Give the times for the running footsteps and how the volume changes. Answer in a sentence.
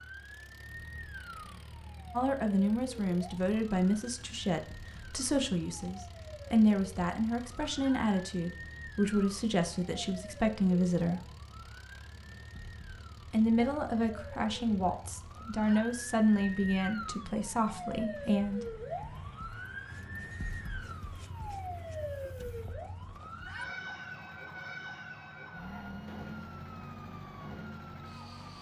You can't hear the running footsteps here.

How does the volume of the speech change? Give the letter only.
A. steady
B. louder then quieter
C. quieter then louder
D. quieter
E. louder
A.